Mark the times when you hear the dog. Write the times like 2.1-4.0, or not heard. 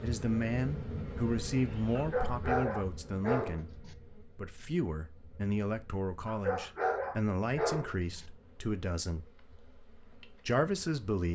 1.9-3.9, 6.2-8.2.